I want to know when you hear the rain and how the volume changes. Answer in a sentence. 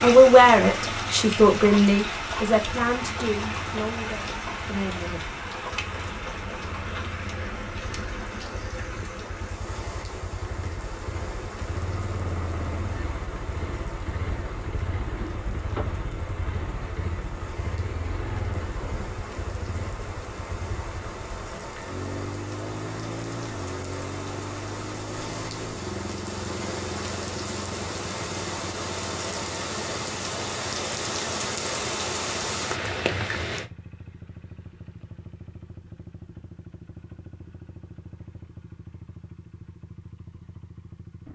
You can hear the rain from 0.0 to 33.7 s, getting quieter then louder.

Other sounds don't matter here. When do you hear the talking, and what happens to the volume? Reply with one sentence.
You can hear the talking from 0.0 to 5.3 s, getting quieter.